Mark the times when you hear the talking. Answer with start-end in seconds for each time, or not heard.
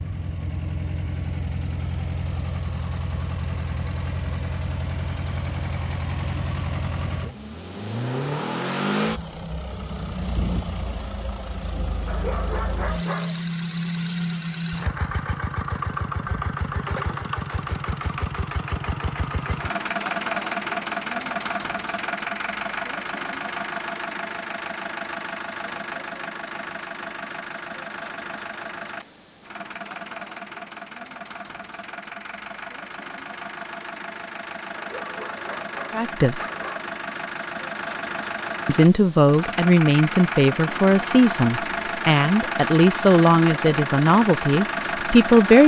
35.9-36.4, 38.6-45.6.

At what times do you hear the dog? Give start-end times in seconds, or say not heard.
12.1-13.4, 34.8-37.0.